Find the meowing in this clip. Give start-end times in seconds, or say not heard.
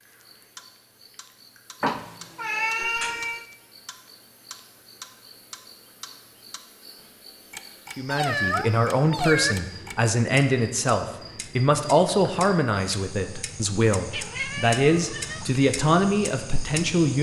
1.8-3.5, 8.1-9.6, 14.1-15.6.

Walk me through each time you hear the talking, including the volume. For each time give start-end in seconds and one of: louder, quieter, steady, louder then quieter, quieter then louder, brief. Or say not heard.
8.0-17.1 steady.